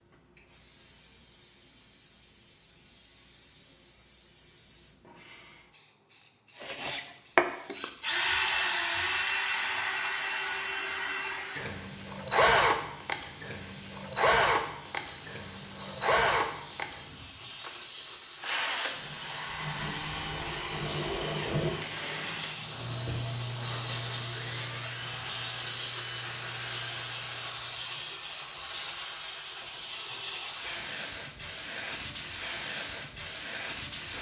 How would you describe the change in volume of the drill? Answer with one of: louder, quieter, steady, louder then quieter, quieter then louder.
quieter.